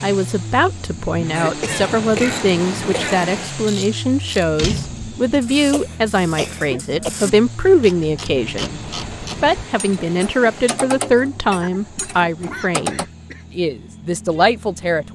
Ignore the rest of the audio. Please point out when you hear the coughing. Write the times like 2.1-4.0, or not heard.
1.4-3.3, 5.5-7.3, 11.6-13.4.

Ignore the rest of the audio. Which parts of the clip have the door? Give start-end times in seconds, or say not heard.
4.5-5.2.